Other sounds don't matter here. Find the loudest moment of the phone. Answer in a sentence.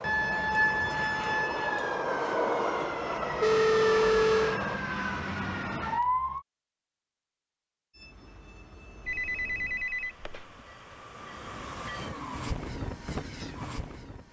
The loudest moment of the phone is at 4 seconds.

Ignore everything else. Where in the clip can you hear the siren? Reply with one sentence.
You can hear the siren from 0.0 to 6.5 s.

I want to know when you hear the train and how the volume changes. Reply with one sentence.
You can hear the train from 0.0 to 4.8 s, getting louder then quieter; and from 7.9 to 14.2 s, getting louder.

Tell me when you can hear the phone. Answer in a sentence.
You can hear the phone from 3.4 to 4.6 s and from 9.1 to 10.4 s.